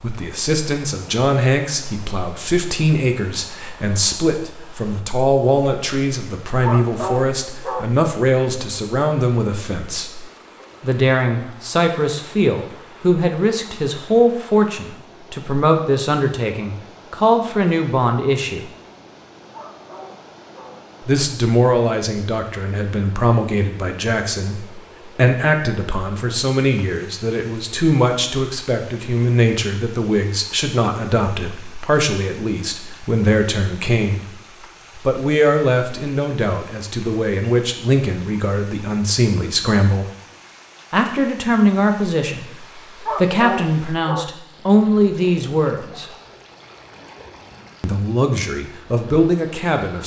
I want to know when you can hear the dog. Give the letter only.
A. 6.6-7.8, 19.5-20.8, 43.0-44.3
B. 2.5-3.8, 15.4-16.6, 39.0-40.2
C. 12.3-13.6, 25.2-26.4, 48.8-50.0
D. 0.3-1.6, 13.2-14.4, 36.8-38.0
A.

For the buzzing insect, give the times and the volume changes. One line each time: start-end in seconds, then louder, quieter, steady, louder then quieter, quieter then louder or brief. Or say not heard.
not heard.